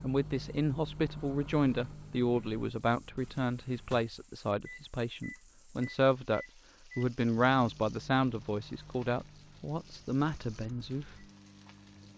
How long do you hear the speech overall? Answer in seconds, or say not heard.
11 s.